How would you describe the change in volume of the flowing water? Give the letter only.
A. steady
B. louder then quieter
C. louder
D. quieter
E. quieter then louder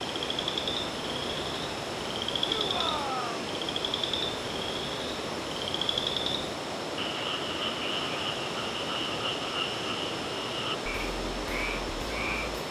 A.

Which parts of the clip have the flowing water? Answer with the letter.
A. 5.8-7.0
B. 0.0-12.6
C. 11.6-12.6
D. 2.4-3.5
B.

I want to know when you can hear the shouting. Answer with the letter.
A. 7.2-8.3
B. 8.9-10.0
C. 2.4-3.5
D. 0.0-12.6
C.